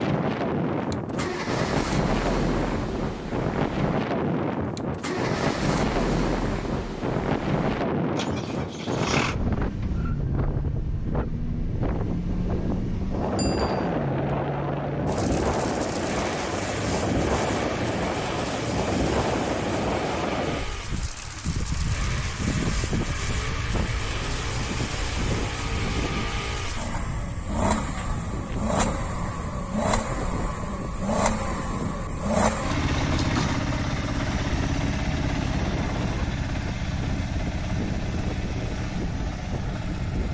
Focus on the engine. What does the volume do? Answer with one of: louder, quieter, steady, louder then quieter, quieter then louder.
louder.